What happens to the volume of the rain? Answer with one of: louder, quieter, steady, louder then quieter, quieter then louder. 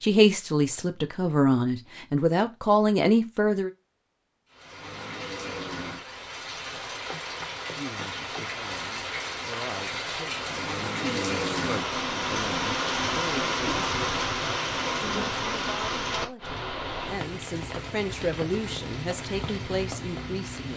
louder then quieter.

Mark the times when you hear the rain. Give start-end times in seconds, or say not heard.
4.5-20.7.